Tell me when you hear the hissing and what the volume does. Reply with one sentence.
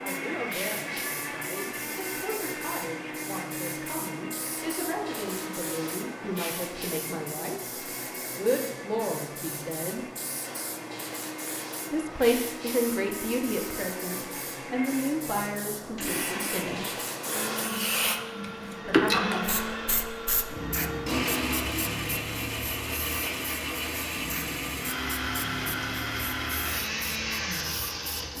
You can hear the hissing from 0.0 to 28.3 s, getting louder then quieter.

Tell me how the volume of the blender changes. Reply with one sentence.
The loudness of the blender goes down, then up.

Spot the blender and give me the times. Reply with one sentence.
The blender can be heard from 0.0 to 28.3 s.